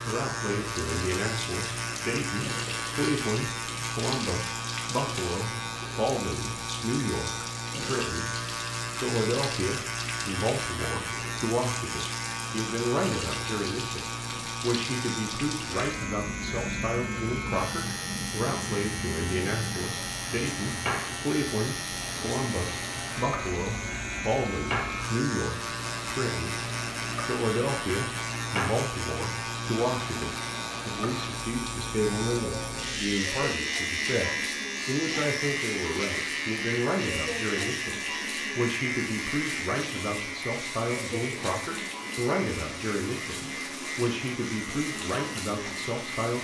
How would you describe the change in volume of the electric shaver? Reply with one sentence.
The loudness of the electric shaver stays about the same.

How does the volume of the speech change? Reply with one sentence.
The volume of the speech stays about the same.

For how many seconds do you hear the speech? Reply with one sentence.
You can hear the speech for 45 seconds altogether.